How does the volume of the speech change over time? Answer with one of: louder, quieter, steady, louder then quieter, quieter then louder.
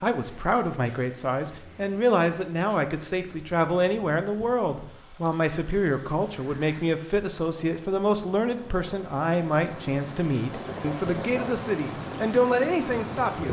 steady.